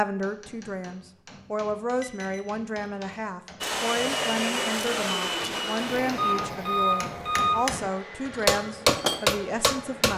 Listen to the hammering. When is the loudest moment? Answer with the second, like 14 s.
9 s.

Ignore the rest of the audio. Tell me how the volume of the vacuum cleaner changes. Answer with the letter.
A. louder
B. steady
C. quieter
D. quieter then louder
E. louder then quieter
C.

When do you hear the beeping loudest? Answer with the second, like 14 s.
7 s.